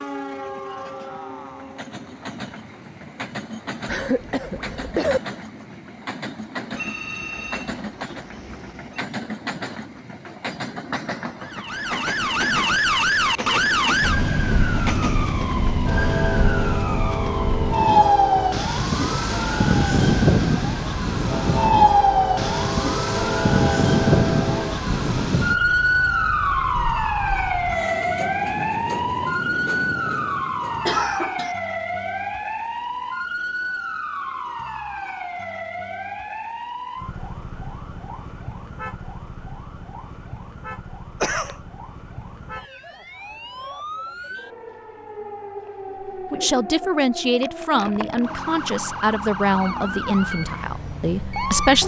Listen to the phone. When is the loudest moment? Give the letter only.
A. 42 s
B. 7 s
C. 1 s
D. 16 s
B.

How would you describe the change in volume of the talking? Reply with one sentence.
The volume of the talking goes down.